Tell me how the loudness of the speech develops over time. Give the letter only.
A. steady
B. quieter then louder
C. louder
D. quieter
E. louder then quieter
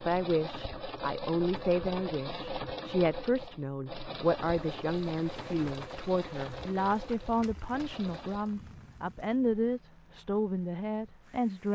A.